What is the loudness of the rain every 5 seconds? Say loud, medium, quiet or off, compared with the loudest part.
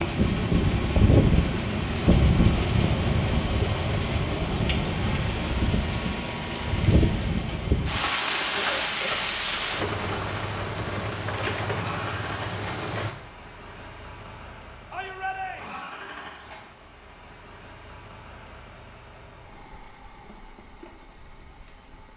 loud, loud, medium, off, off.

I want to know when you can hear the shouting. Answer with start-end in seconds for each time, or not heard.
14.9-15.9.